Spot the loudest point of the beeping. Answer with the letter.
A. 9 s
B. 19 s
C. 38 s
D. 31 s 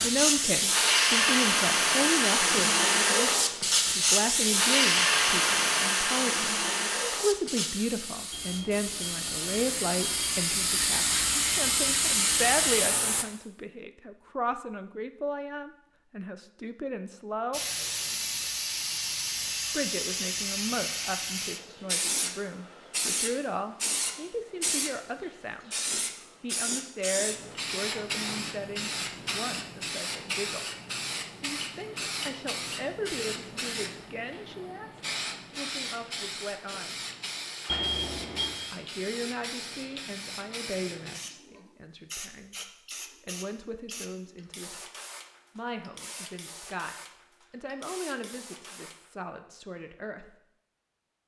C.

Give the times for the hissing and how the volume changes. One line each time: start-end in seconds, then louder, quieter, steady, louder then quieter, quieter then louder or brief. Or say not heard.
0.0-13.2 quieter then louder
17.5-49.1 quieter.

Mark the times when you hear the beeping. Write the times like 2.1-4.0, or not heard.
8.3-10.2, 37.6-38.6.